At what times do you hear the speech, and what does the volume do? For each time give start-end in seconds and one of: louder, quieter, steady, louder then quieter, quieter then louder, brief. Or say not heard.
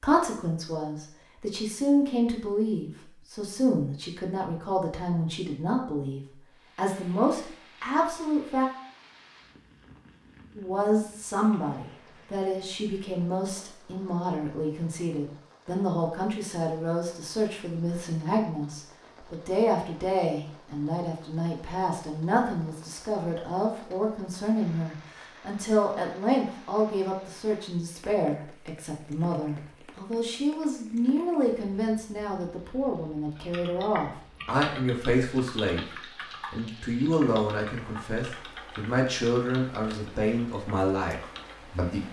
0.0-8.7 steady
10.6-42.0 steady.